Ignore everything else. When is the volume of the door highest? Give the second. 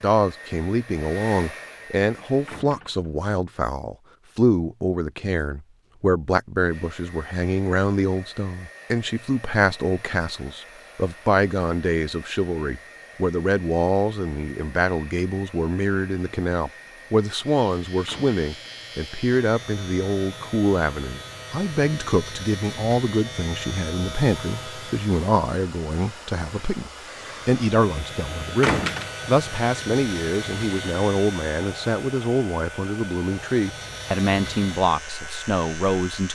29 s.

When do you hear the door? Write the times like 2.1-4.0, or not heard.
2.5-3.2, 18.1-18.9, 28.6-29.1.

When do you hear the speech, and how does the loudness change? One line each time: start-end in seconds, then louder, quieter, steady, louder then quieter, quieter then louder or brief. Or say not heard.
0.0-36.3 steady.